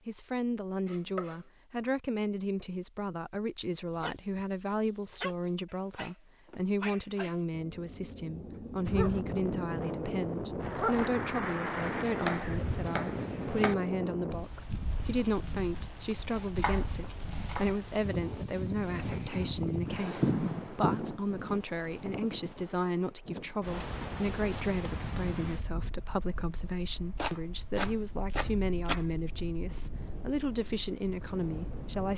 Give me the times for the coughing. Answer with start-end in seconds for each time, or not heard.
not heard.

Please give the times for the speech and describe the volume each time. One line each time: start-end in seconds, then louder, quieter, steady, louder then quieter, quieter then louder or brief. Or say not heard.
0.1-32.1 steady.